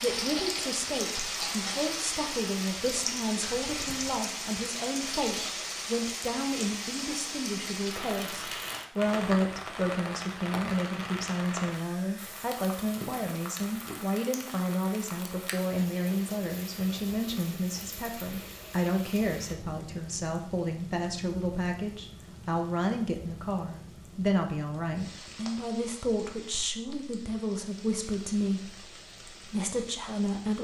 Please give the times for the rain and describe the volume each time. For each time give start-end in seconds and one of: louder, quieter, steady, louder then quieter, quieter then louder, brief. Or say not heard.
0.0-30.5 quieter.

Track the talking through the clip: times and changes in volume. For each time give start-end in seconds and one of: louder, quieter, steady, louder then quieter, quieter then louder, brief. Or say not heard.
0.0-30.5 steady.